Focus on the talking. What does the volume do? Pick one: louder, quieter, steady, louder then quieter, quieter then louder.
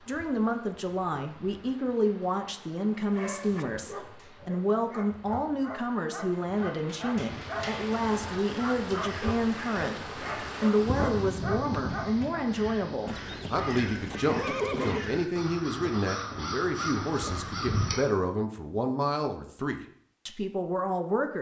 steady.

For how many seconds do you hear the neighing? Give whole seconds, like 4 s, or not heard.
2 s.